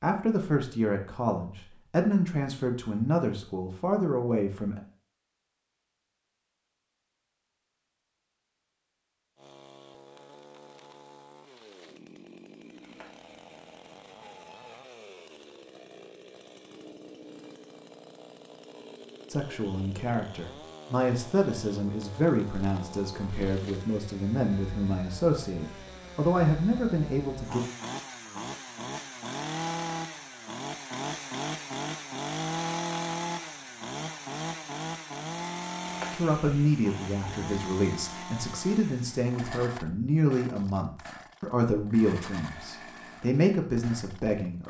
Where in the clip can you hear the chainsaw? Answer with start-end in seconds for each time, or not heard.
9.3-44.6.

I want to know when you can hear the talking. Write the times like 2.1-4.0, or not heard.
0.0-4.8, 19.3-27.6, 36.1-44.6.